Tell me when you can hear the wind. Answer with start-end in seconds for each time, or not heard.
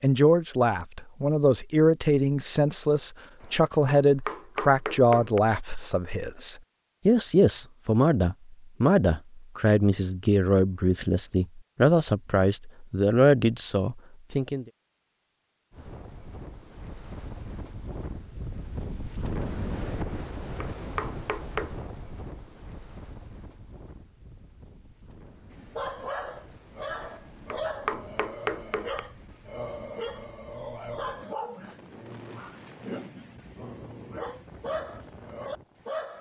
15.7-36.1.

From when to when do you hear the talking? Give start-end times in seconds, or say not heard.
0.0-14.7.